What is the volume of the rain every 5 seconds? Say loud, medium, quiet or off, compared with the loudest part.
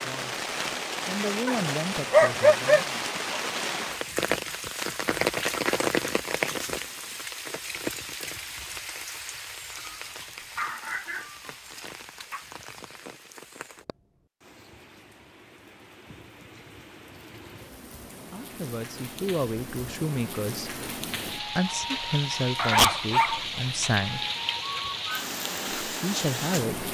loud, loud, quiet, quiet, loud, loud.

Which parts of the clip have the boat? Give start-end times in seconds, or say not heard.
not heard.